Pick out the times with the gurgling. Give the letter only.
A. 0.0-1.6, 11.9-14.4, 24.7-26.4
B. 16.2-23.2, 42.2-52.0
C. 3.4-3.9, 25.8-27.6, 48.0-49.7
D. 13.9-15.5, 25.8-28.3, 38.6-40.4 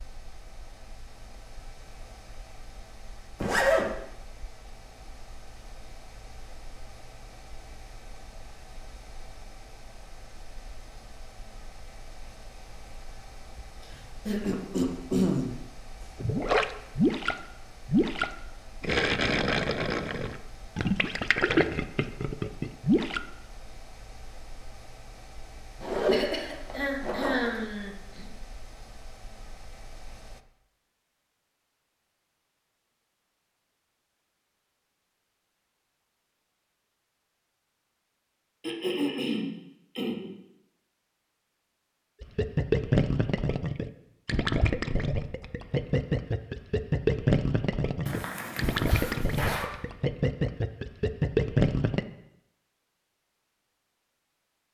B.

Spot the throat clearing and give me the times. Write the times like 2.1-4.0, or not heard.
13.9-15.5, 25.8-28.3, 38.6-40.4.